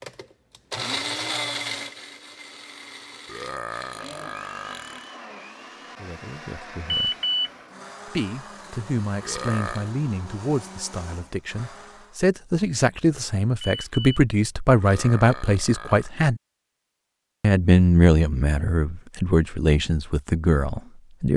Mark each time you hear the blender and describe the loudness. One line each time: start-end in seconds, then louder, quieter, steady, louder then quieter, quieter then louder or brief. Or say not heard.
0.0-12.2 quieter.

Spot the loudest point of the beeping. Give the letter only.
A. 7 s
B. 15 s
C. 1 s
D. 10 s
A.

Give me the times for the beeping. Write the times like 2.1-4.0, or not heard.
6.8-7.5, 13.6-14.2.